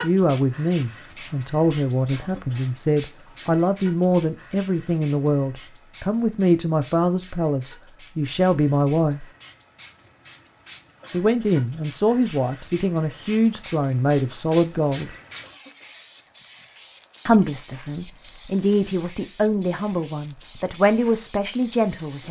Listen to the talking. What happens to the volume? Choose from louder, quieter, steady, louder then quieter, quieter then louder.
steady.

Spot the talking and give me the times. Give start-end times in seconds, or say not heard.
0.0-9.2, 11.1-15.1, 17.2-22.2.